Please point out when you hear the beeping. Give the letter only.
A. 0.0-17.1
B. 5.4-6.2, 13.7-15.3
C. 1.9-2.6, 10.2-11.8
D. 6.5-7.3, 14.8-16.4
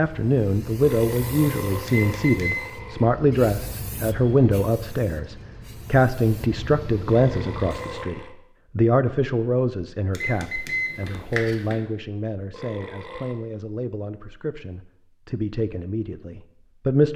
C.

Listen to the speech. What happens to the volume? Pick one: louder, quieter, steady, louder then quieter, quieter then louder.
quieter.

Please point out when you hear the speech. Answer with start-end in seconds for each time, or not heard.
0.0-17.1.